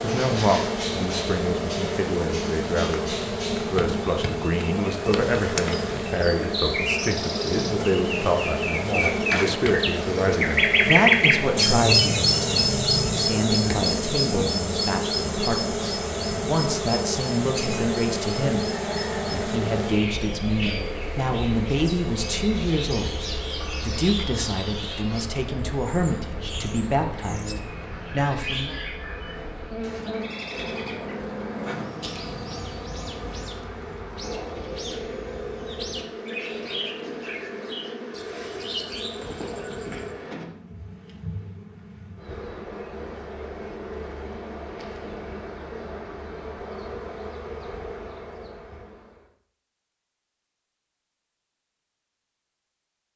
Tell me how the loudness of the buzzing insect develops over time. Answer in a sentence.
The volume of the buzzing insect goes down.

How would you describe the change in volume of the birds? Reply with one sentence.
The volume of the birds goes up, then down.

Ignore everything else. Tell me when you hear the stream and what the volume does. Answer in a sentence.
The stream can't be heard in this clip.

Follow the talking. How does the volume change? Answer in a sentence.
The loudness of the talking stays about the same.